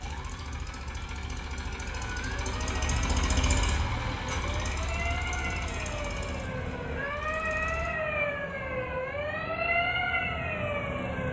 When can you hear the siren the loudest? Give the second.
10 s.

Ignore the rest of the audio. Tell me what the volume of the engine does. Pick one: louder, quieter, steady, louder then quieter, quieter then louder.
louder then quieter.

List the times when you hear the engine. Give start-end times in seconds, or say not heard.
0.0-8.0.